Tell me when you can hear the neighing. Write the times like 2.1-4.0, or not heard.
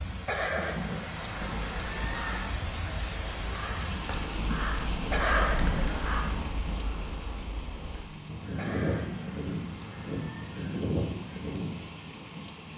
0.2-2.5, 5.1-6.5, 8.6-10.6.